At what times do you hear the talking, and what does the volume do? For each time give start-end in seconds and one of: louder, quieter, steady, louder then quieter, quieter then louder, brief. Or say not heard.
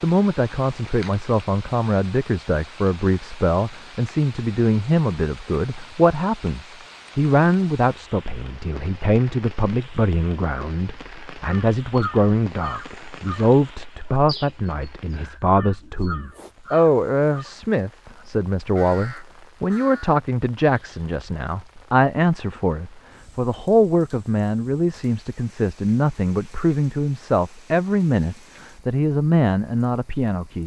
0.0-30.6 steady.